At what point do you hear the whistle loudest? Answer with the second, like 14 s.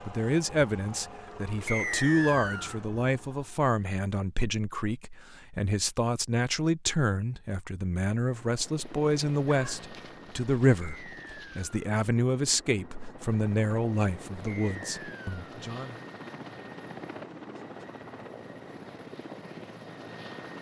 2 s.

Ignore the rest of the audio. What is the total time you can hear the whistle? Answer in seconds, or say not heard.
3 s.